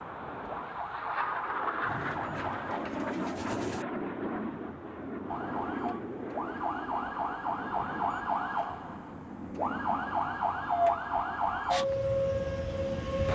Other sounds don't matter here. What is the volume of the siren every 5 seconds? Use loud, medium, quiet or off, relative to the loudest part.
medium, medium, loud.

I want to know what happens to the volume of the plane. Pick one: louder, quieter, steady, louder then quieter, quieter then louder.
quieter.